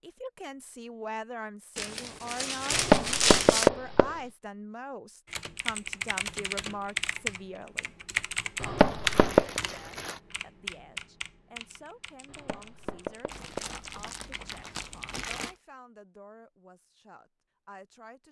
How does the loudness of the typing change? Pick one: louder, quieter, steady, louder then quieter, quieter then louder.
quieter.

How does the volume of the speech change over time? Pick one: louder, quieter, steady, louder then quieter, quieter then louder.
quieter.